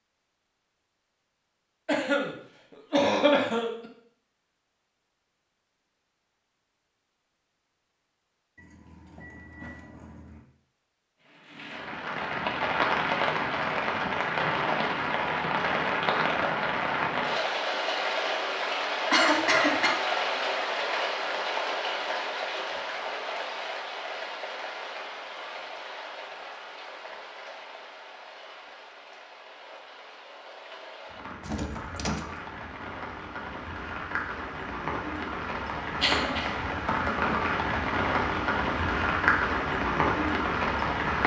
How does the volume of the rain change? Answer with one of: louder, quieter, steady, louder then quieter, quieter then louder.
quieter then louder.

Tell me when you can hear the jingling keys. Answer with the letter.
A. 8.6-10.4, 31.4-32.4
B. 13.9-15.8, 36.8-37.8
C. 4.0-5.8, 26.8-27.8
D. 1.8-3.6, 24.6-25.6
A.